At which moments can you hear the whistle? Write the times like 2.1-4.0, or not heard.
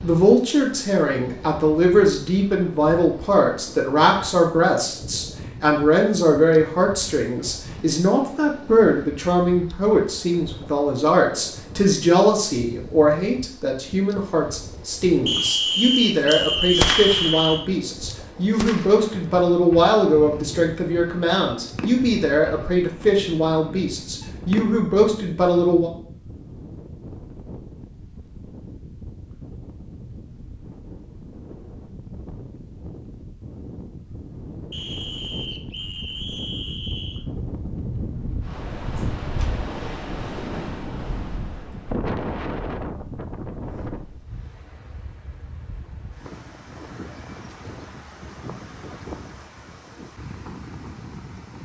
15.2-17.7, 34.7-37.2.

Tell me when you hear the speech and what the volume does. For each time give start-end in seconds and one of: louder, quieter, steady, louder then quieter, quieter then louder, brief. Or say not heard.
0.0-25.9 steady.